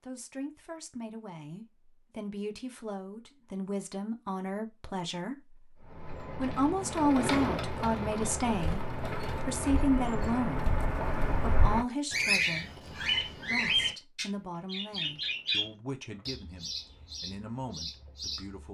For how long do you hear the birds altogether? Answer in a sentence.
You can hear the birds for 12 seconds altogether.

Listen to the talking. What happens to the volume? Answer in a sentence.
The loudness of the talking goes up, then down.